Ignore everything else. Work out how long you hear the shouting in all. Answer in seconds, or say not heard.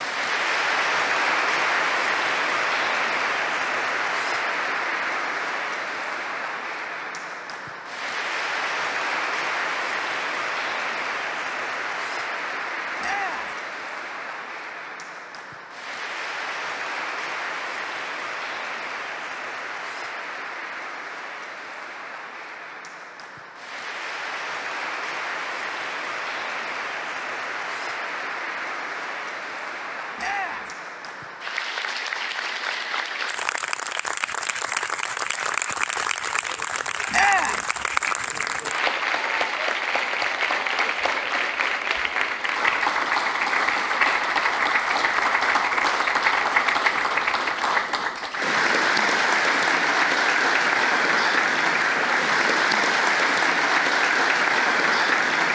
2 s.